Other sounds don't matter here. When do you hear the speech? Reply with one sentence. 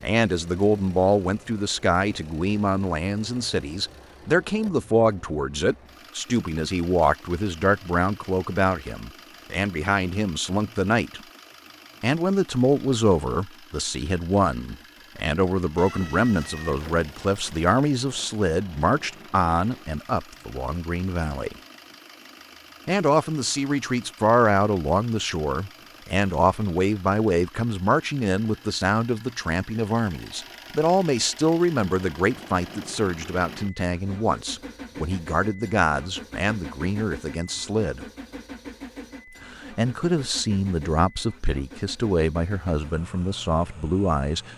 You can hear the speech from 0.0 to 11.2 s, from 12.0 to 21.6 s, from 22.9 to 38.0 s and from 39.5 to 44.5 s.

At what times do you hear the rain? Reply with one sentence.
You can't hear the rain here.